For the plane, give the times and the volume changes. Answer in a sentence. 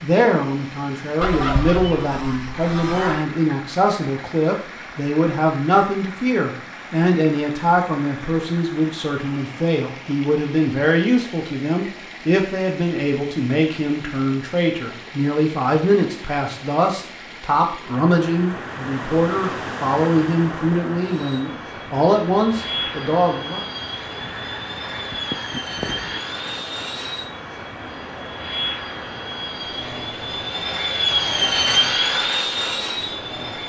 The plane can be heard from 21.1 to 33.6 s, getting louder.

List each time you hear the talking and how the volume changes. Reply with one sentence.
The talking can be heard from 0.0 to 23.6 s, at a steady volume.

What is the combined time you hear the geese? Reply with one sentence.
You can hear the geese for 4 seconds altogether.